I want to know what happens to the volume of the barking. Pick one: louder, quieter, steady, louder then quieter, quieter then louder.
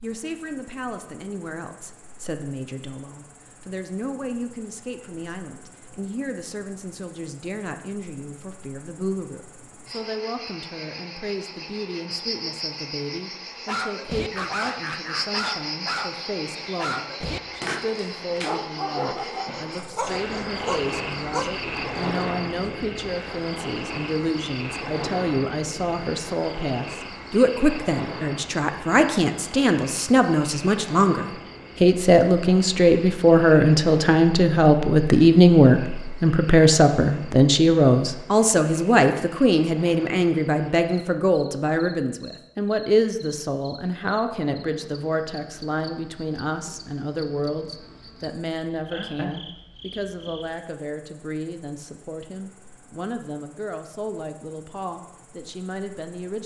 steady.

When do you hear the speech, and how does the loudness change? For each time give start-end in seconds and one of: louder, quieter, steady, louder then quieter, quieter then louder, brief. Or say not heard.
0.0-56.4 louder then quieter.